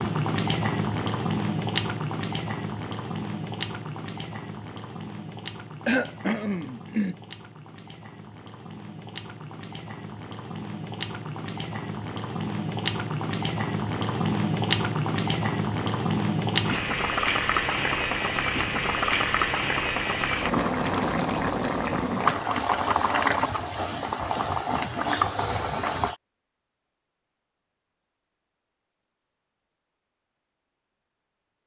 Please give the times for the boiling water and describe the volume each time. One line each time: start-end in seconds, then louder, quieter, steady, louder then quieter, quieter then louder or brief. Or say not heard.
0.0-26.1 quieter then louder.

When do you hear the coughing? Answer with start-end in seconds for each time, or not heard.
5.8-7.2.